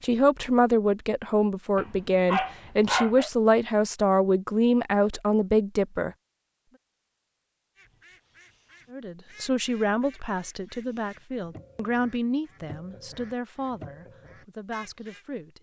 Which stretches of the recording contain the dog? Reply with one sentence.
You can hear the dog from 1.8 to 3.3 s.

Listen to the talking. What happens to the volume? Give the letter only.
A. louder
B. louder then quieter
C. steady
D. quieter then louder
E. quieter
E.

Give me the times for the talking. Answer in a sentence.
The talking can be heard from 0.0 to 6.1 s and from 8.9 to 15.5 s.